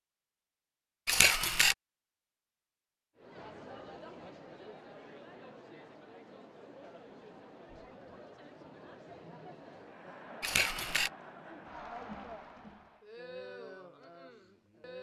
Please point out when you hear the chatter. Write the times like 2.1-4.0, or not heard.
3.1-14.9.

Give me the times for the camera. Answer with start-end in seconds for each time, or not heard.
1.1-1.8, 10.4-11.1.